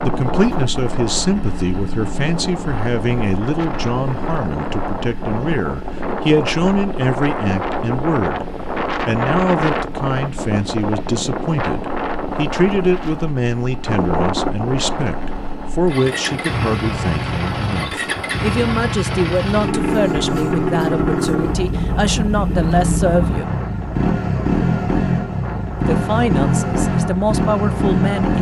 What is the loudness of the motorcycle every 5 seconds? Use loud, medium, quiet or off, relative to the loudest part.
quiet, quiet, quiet, medium, loud, loud.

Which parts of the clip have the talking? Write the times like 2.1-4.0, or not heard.
0.0-23.6, 25.9-28.3.